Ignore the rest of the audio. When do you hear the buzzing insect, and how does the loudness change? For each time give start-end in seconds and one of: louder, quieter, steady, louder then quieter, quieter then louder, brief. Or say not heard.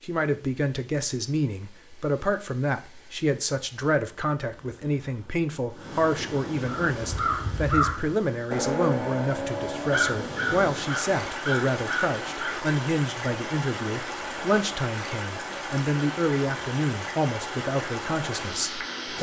not heard.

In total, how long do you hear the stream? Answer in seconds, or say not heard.
19 s.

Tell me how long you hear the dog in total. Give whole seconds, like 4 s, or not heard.
not heard.